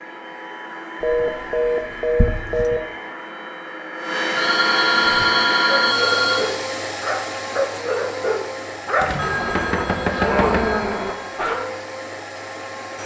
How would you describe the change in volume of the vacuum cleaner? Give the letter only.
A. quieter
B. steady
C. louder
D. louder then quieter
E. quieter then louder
D.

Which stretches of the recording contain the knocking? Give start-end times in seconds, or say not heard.
9.0-11.0.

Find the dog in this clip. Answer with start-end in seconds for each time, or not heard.
5.0-11.6.